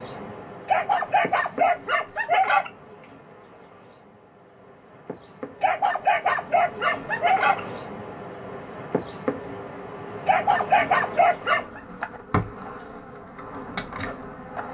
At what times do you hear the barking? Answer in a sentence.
You can hear the barking from 0.7 to 2.7 s, from 5.6 to 7.6 s and from 10.2 to 11.8 s.